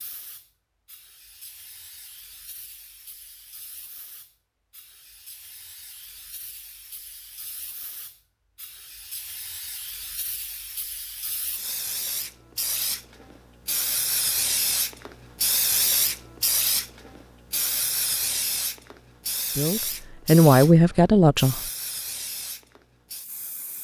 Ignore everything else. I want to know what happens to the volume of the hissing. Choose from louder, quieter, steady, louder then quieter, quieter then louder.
louder then quieter.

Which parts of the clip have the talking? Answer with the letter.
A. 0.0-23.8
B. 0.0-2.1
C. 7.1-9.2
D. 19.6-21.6
D.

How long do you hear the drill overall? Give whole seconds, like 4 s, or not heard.
not heard.